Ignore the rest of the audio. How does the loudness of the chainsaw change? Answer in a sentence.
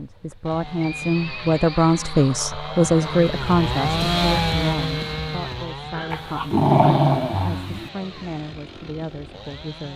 The volume of the chainsaw goes up, then down.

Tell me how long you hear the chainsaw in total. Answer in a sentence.
You can hear the chainsaw for 10 seconds altogether.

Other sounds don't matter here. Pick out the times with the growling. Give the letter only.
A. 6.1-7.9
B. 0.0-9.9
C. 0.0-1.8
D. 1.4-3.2
A.